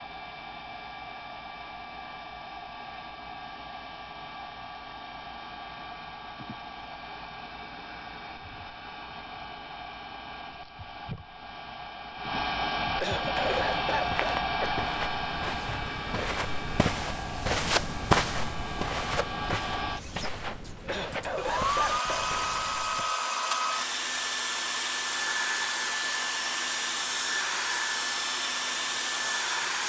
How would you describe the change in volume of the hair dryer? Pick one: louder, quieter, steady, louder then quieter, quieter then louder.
louder.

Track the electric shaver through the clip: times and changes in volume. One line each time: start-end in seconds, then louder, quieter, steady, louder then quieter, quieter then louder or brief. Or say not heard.
not heard.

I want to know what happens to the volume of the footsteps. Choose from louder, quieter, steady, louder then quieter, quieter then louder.
louder then quieter.